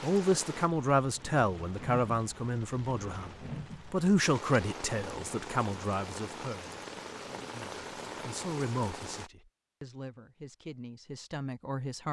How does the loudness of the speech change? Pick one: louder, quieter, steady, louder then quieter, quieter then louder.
quieter.